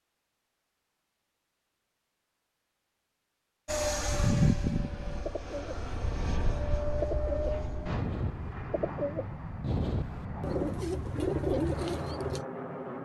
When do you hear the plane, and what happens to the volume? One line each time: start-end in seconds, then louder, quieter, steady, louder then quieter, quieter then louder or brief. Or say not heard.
3.6-13.0 quieter.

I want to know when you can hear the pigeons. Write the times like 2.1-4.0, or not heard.
5.2-12.4.